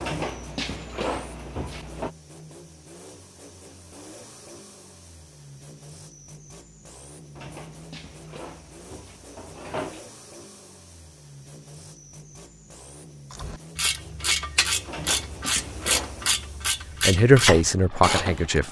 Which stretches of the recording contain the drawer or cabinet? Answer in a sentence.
The drawer or cabinet can be heard from 0.0 to 2.1 s, from 7.3 to 10.1 s and from 14.8 to 16.5 s.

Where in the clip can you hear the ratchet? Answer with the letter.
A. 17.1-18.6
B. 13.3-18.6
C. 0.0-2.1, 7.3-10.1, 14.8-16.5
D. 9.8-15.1
B.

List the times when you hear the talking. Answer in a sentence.
You can hear the talking from 17.1 to 18.6 s.